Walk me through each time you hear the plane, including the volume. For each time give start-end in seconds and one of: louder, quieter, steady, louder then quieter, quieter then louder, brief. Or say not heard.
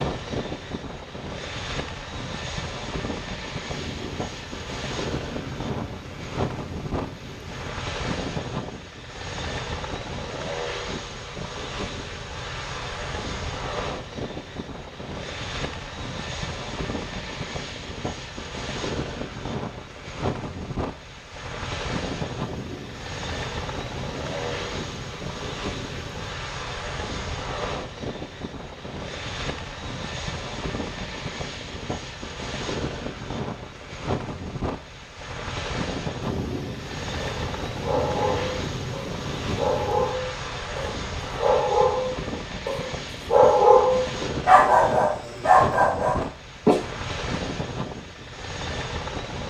0.0-49.4 steady.